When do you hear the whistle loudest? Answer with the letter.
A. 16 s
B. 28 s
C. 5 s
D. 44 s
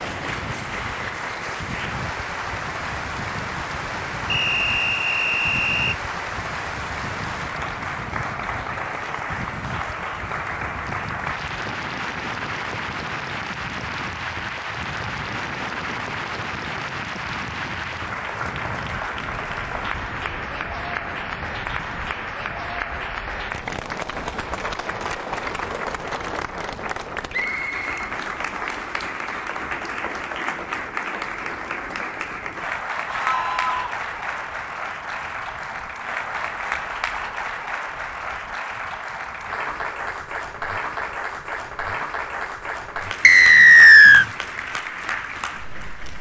D.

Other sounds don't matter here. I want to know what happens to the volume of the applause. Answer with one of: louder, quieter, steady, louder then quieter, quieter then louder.
steady.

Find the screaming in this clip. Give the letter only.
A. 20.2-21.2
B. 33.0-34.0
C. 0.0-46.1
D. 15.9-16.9
B.